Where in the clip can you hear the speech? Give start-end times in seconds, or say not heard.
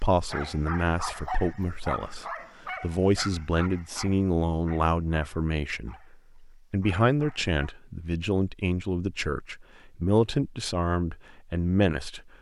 0.0-12.2.